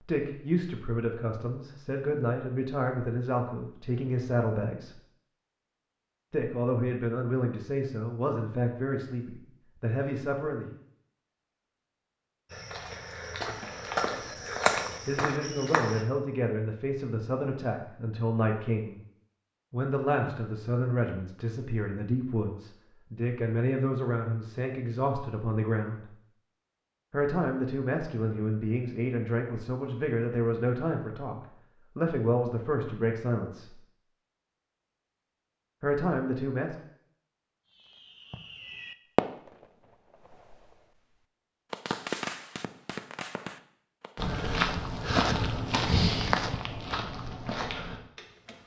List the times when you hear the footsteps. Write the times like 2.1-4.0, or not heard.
12.5-16.1, 44.1-48.5.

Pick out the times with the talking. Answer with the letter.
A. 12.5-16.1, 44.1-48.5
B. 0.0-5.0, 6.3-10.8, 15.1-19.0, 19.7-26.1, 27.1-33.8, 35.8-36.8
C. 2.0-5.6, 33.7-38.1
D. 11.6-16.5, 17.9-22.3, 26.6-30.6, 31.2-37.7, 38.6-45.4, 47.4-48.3
B.